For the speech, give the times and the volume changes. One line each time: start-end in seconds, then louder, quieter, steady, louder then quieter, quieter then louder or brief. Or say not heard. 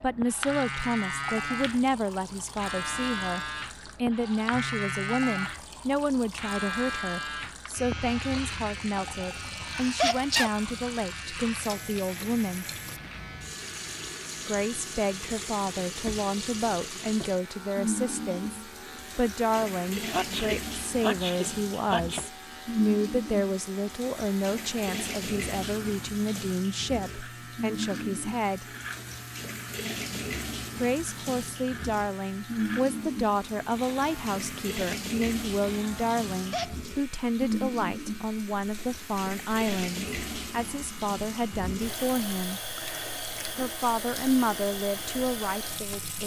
0.0-12.7 steady
14.4-28.6 steady
30.8-42.6 steady
43.5-46.2 brief.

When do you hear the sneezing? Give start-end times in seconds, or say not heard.
9.5-10.5, 20.1-22.2, 36.3-36.9.